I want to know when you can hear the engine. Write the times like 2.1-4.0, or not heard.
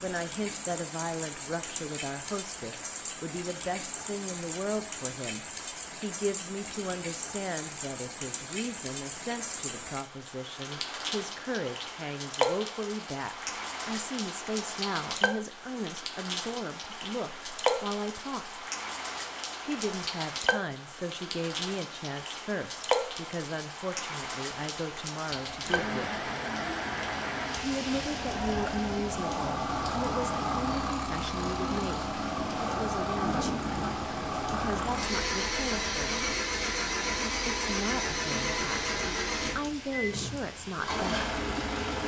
25.2-42.0.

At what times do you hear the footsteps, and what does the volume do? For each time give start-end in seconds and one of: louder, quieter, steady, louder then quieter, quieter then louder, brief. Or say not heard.
not heard.